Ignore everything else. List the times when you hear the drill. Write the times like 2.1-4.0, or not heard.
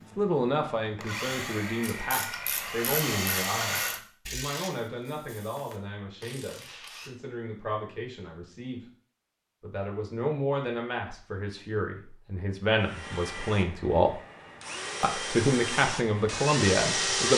0.0-4.0, 12.8-17.3.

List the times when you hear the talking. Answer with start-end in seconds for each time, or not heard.
0.1-8.8, 9.6-14.2, 15.0-17.3.